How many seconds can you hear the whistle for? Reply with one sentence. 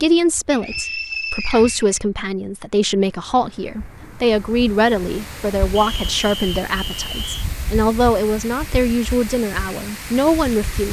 The whistle can be heard for 3 seconds in total.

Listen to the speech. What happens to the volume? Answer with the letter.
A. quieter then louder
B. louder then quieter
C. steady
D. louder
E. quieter
C.